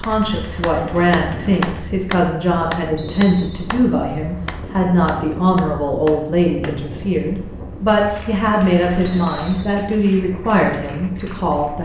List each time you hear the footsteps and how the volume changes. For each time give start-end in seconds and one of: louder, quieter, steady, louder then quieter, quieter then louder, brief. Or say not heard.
not heard.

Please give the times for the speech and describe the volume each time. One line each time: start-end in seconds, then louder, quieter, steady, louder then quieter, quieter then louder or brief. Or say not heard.
0.0-11.7 steady.